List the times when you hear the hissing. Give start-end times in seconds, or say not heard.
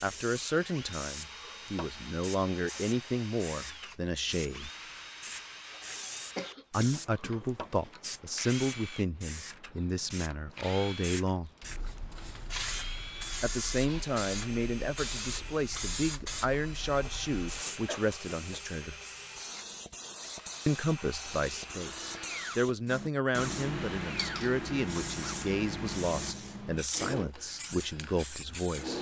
0.0-28.9.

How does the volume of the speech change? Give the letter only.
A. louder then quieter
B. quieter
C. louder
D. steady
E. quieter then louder
D.